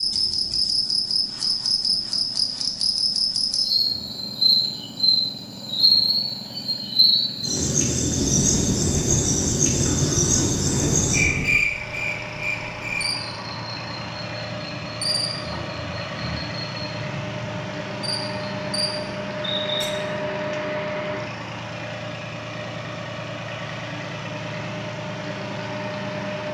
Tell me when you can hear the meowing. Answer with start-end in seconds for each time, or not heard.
not heard.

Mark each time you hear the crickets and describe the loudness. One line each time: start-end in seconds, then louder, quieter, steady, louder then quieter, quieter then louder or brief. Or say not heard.
0.0-19.9 quieter.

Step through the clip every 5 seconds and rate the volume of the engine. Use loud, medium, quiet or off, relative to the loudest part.
quiet, medium, medium, loud, loud, loud.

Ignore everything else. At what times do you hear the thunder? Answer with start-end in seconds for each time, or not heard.
8.2-11.7.